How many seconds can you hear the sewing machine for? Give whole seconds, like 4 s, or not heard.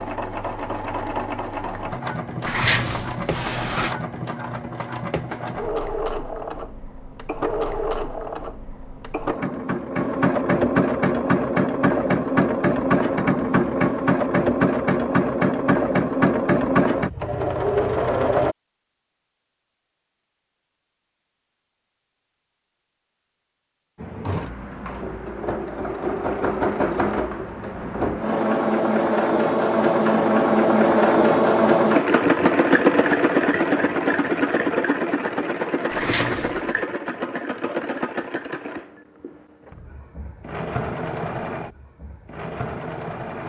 38 s.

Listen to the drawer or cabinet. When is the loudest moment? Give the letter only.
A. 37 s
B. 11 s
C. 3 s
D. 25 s
C.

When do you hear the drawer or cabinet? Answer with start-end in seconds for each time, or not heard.
2.5-4.0, 35.9-36.8.